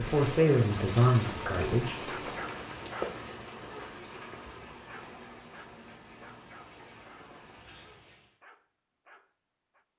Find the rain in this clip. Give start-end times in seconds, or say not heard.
0.0-8.3.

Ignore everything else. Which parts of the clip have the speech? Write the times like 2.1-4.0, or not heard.
0.0-2.0.